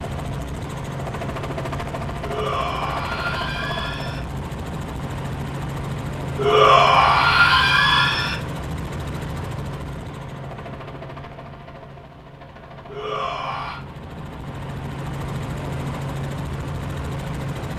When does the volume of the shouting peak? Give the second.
7 s.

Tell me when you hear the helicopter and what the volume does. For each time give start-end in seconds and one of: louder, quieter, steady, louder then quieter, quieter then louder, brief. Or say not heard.
0.0-17.7 quieter then louder.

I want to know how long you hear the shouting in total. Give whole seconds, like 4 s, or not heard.
5 s.